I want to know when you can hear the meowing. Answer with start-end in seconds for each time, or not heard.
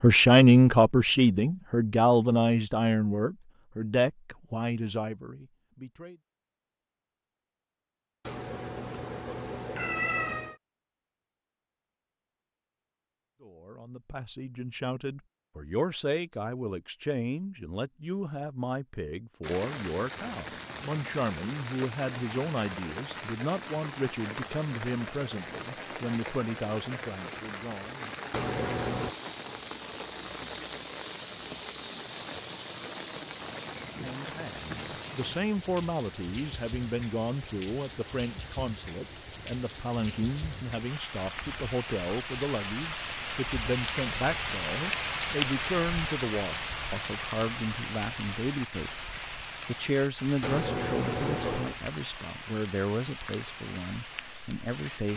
8.2-10.6, 28.3-29.1, 50.4-51.8.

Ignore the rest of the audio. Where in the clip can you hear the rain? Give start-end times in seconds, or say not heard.
19.4-55.1.